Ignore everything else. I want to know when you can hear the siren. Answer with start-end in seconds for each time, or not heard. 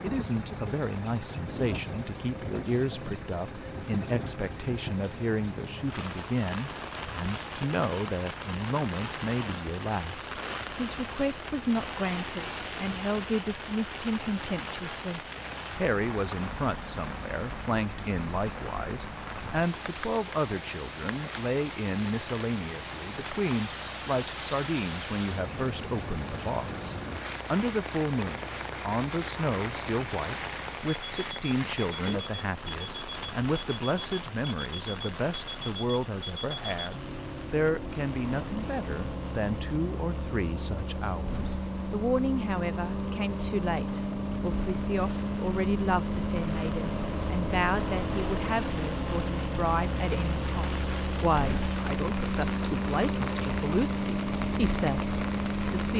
not heard.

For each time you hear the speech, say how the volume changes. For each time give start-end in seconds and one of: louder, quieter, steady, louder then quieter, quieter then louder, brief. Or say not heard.
0.0-55.9 steady.